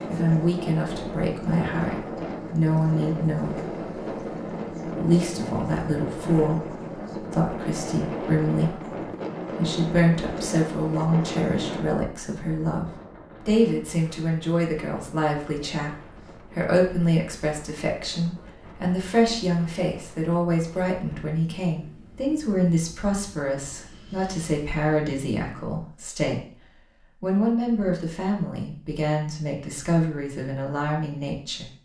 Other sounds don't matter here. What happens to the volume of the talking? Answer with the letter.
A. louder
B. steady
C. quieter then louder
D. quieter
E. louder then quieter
B.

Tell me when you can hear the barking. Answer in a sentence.
The barking can't be heard in this clip.